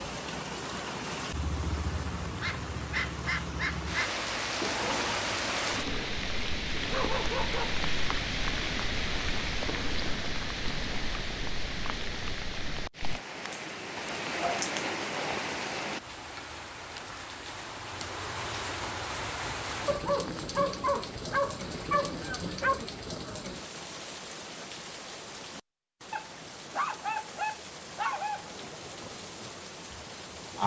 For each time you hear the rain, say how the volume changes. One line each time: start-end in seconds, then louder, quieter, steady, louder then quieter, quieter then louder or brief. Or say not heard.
0.0-30.6 quieter.